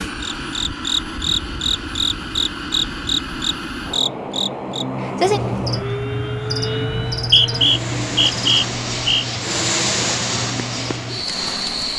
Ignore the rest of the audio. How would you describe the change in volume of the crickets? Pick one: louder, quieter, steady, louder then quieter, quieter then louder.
quieter.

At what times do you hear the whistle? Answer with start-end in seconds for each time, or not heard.
7.1-9.2.